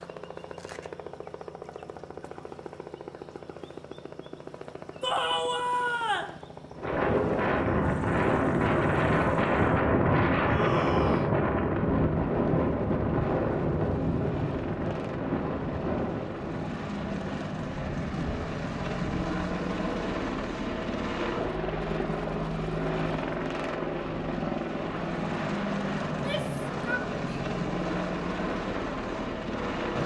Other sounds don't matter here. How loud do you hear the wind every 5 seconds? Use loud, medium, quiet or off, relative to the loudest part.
off, loud, loud, medium, quiet, quiet.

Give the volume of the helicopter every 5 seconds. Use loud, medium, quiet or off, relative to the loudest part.
medium, quiet, medium, loud, loud, loud.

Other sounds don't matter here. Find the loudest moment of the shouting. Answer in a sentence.
The loudest moment of the shouting is at 5 seconds.